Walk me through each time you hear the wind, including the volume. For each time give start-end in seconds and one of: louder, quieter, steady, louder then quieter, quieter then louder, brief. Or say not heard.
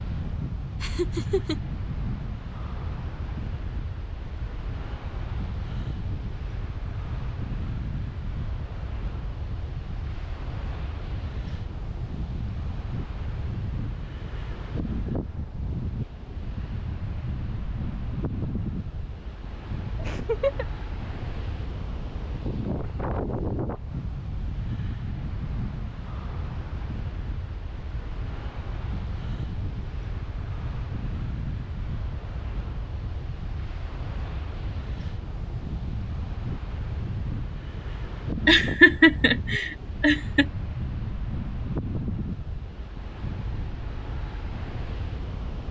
0.0-45.6 steady.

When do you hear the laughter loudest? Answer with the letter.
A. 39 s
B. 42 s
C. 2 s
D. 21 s
A.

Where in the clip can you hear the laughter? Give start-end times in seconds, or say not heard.
0.8-1.6, 19.9-20.6, 38.5-40.5.